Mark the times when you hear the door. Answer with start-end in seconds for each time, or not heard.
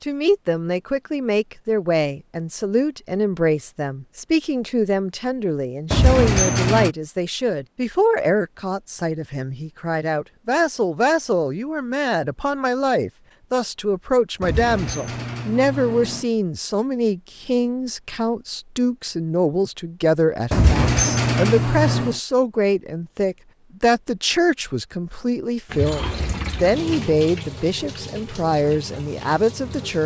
5.9-6.9, 14.4-16.2, 20.5-22.1.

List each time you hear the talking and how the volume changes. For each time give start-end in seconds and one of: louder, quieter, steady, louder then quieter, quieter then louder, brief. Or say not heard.
0.0-30.0 steady.